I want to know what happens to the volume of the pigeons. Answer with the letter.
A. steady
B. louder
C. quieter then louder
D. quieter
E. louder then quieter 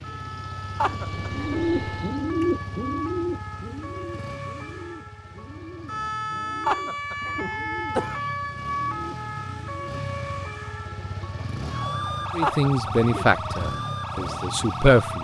D.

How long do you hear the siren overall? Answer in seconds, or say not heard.
15 s.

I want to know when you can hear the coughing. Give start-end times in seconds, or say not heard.
0.8-1.6, 6.7-8.3, 12.4-13.3.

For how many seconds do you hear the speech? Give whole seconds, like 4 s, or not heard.
3 s.